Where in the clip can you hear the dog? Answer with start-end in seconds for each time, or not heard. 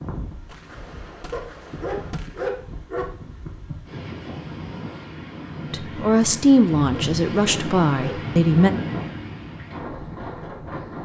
1.3-3.1, 6.9-8.7.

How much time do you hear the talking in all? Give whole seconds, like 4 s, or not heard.
3 s.